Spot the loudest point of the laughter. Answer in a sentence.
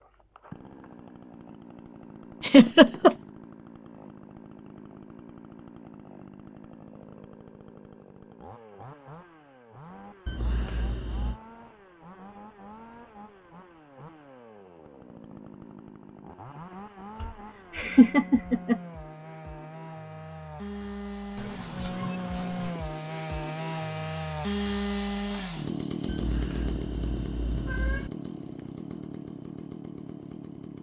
The volume of the laughter peaks at 3 seconds.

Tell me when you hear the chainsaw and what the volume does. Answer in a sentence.
You can hear the chainsaw from 0.0 to 30.7 s, getting louder.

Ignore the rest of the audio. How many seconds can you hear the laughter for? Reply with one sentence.
The laughter can be heard for 4 seconds in total.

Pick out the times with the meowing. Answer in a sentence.
The meowing can be heard from 10.2 to 11.4 s and from 26.1 to 28.1 s.